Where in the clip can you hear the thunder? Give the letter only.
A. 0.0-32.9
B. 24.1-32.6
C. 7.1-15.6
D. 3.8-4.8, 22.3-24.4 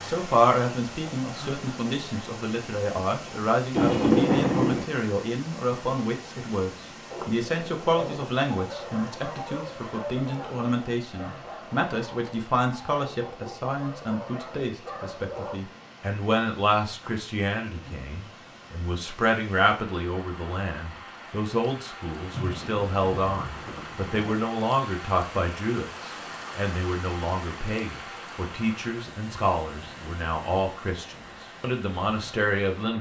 D.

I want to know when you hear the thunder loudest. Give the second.
4 s.